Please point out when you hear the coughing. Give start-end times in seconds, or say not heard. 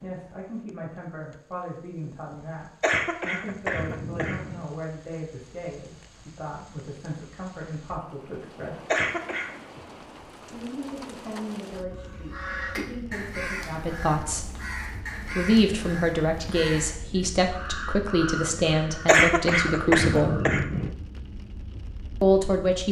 2.8-4.7, 8.9-9.6, 19.1-20.9.